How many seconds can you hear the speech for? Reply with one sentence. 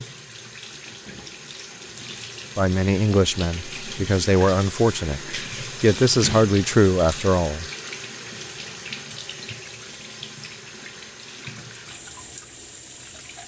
The speech can be heard for 5 seconds in total.